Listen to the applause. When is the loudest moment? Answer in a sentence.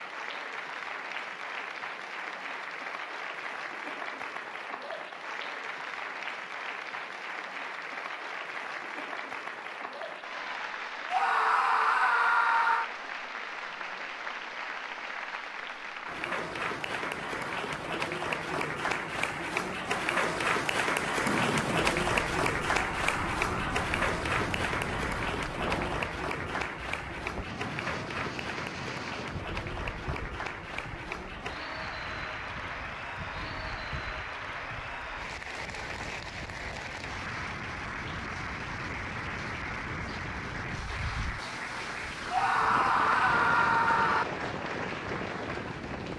The loudest moment of the applause is at 22 seconds.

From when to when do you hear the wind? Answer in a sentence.
The wind can be heard from 21.2 to 46.1 s.